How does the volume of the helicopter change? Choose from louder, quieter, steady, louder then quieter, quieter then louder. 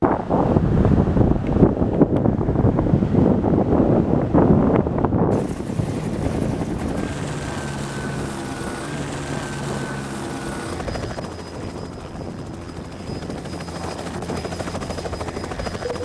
quieter then louder.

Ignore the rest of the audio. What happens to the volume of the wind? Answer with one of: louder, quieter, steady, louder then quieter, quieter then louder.
quieter.